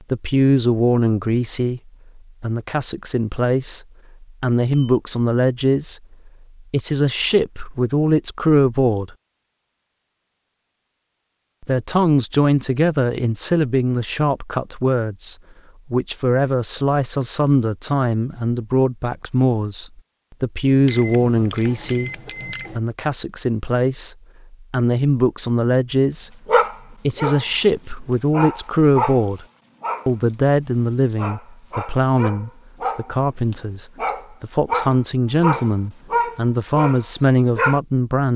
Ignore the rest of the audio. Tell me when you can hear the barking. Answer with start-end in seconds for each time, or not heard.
26.4-37.8.